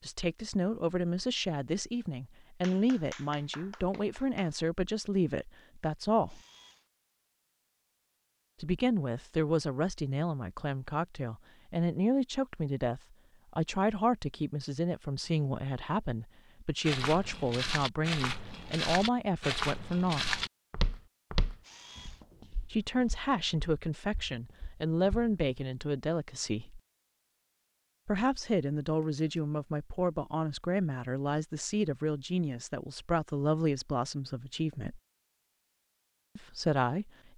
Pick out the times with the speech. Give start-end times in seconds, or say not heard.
0.0-6.4, 8.6-20.4, 22.7-26.8, 28.1-35.0, 36.4-37.3.